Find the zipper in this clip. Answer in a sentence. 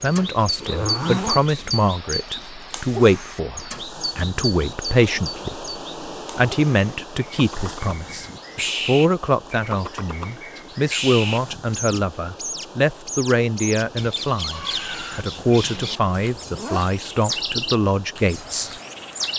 You can hear the zipper from 0.6 to 1.4 s and from 15.3 to 16.9 s.